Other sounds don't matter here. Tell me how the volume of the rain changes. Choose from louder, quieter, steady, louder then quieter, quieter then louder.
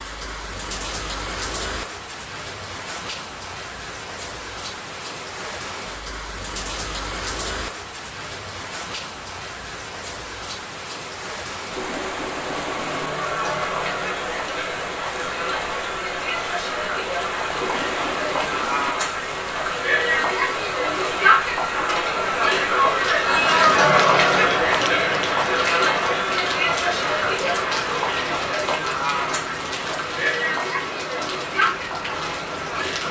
steady.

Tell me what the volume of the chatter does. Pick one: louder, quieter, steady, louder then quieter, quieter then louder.
louder then quieter.